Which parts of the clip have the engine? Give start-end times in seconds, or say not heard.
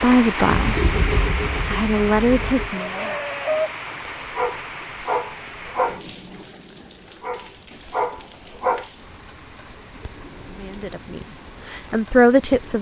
0.0-2.8.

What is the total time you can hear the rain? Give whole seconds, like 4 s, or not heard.
13 s.